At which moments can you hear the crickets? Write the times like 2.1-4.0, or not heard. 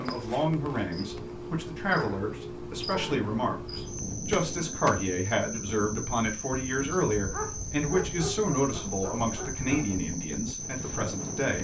0.0-11.5.